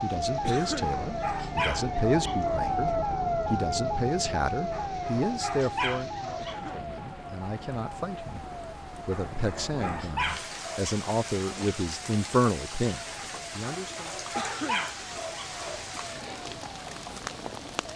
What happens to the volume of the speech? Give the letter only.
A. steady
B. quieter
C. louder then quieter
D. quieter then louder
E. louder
D.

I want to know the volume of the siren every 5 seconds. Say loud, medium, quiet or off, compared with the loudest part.
loud, medium, quiet, quiet.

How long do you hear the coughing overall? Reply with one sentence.
You can hear the coughing for 2 seconds altogether.